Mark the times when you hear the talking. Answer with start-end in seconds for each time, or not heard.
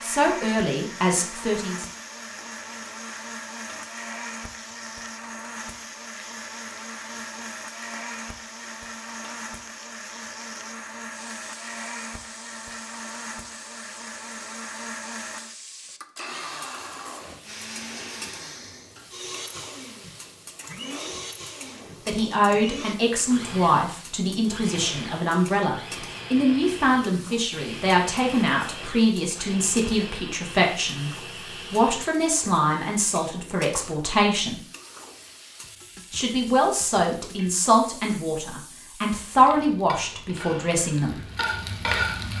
0.0-1.9, 22.1-34.6, 36.1-41.2.